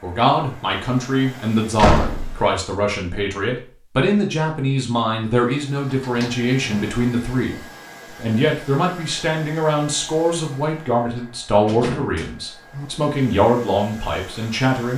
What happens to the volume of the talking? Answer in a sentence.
The volume of the talking stays about the same.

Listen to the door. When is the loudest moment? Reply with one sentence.
The volume of the door peaks at 2 seconds.